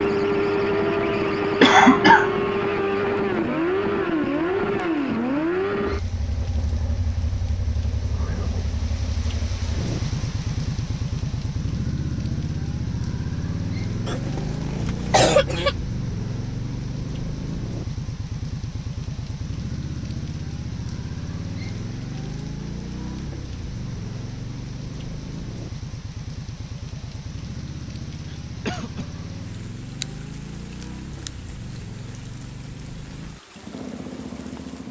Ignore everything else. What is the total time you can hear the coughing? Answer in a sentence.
You can hear the coughing for 3 seconds altogether.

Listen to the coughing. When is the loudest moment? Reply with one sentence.
The volume of the coughing peaks at 2 seconds.